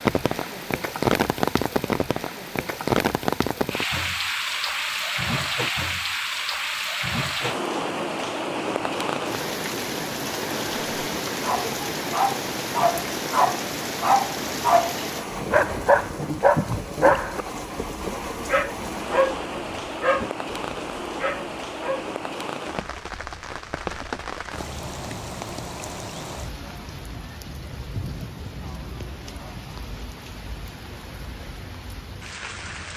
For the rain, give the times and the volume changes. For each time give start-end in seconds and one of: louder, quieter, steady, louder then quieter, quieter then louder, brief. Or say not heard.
0.0-32.9 quieter.